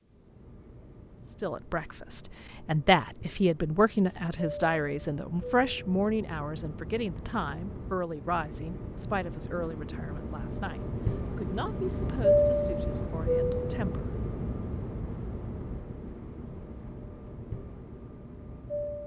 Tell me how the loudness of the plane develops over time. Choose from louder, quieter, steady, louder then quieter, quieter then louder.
louder then quieter.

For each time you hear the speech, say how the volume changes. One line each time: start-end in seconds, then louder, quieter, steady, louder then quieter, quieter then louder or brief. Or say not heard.
1.4-14.1 quieter.